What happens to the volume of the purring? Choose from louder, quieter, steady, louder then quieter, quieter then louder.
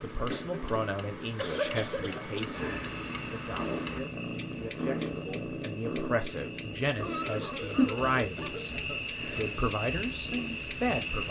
louder then quieter.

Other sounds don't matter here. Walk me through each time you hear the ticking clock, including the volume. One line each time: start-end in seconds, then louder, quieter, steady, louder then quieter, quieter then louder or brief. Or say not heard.
0.0-11.2 steady.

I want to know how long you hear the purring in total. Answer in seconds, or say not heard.
11 s.